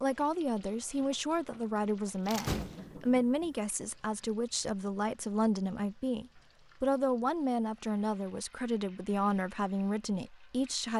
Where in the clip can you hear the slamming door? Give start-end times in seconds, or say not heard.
2.2-3.5.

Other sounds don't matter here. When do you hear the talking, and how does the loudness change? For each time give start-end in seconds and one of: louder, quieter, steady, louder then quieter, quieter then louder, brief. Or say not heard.
0.0-10.9 steady.